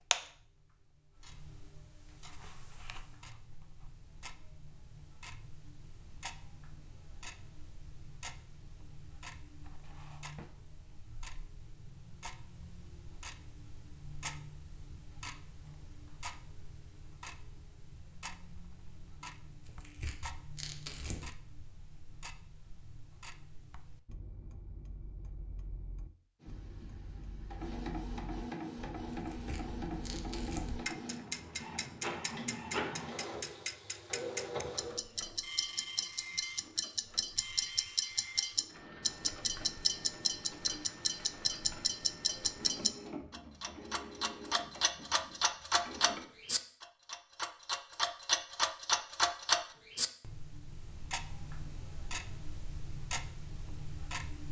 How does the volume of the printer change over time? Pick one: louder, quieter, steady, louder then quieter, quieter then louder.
quieter.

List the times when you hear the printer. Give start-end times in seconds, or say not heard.
26.4-46.2.